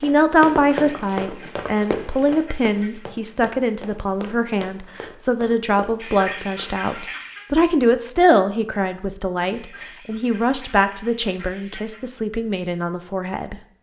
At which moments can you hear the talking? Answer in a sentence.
The talking can be heard from 0.0 to 13.6 s.